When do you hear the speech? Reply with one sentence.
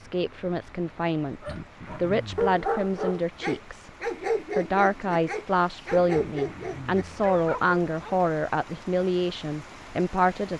You can hear the speech from 0.0 to 3.9 s and from 4.5 to 10.5 s.